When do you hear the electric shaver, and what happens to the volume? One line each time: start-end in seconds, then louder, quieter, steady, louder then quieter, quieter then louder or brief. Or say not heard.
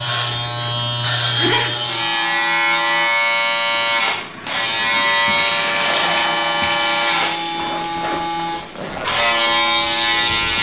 0.0-10.5 steady.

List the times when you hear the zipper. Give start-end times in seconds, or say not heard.
0.2-1.8, 7.5-9.1.